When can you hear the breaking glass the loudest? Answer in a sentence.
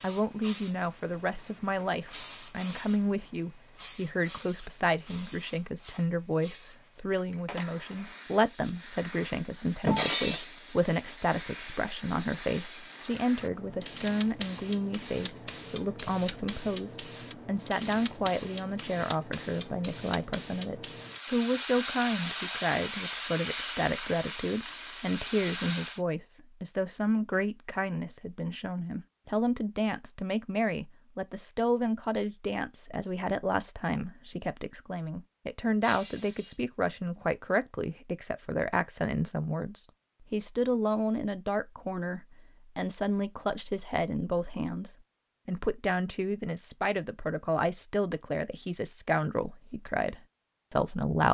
The loudest moment of the breaking glass is at 10 seconds.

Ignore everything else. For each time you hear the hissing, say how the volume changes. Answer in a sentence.
The hissing can be heard from 0.0 to 26.0 s, getting louder.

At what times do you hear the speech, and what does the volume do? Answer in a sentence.
You can hear the speech from 0.0 to 51.2 s, at a steady volume.